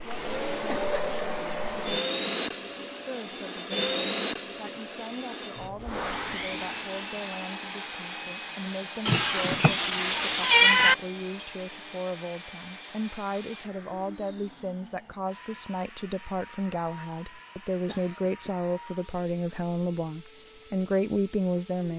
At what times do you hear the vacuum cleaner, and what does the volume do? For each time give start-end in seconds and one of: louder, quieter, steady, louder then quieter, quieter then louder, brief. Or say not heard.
0.0-21.9 quieter.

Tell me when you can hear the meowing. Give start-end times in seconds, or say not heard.
9.1-10.9.